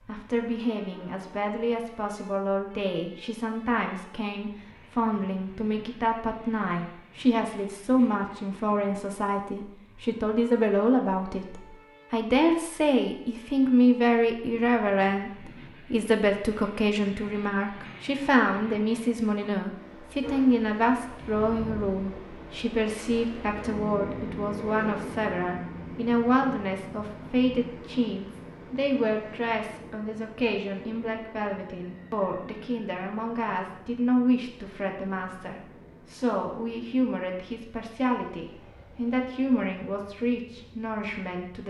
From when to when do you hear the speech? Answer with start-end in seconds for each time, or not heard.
0.1-41.6.